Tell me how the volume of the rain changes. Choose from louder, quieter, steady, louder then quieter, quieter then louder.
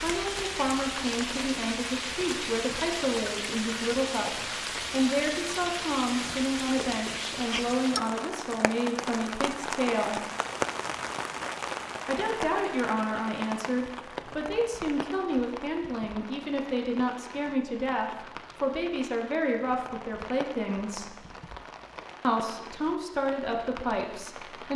quieter.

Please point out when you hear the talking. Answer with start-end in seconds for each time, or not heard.
0.0-10.2, 12.1-21.1, 22.2-24.7.